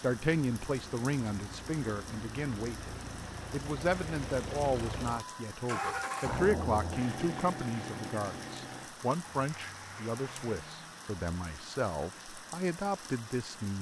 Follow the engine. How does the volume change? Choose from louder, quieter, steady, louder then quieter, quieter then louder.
louder then quieter.